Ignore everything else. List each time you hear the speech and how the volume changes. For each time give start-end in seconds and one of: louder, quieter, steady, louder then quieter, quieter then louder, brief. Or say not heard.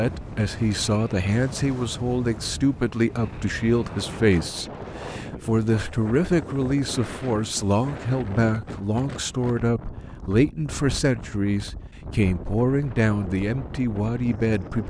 0.0-14.8 steady.